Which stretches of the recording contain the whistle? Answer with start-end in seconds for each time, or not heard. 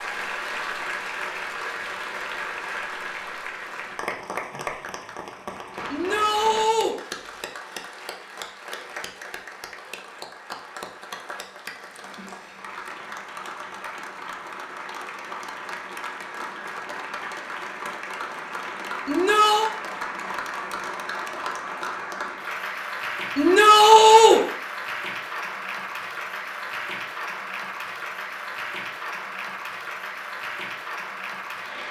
not heard.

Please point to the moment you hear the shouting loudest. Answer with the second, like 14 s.
24 s.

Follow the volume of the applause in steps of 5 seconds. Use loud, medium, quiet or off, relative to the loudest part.
loud, medium, medium, loud, loud, loud, loud.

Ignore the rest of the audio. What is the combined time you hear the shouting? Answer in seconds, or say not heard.
3 s.